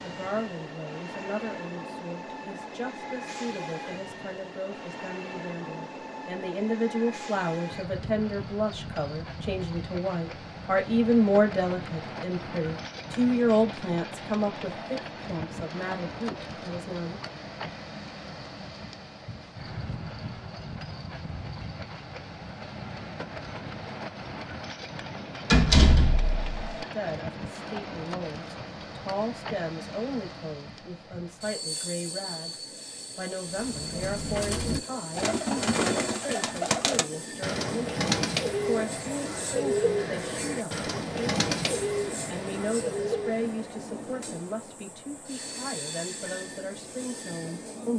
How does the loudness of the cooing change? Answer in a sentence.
The volume of the cooing stays about the same.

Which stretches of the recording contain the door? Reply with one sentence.
You can hear the door from 25.5 to 26.8 s.